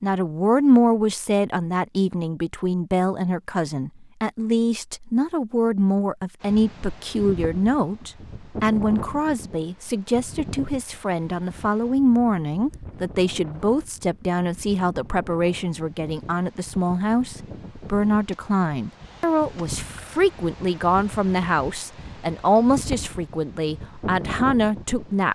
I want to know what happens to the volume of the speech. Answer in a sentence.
The loudness of the speech stays about the same.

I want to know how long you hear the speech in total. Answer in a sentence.
You can hear the speech for 25 seconds altogether.